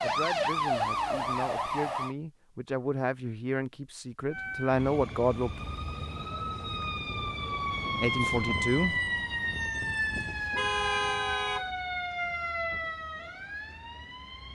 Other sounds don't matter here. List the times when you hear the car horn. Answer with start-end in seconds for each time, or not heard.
10.3-11.7.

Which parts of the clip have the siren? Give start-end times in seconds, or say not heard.
0.0-2.1, 4.3-14.4.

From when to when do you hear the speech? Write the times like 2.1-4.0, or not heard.
0.0-5.6, 8.0-8.9.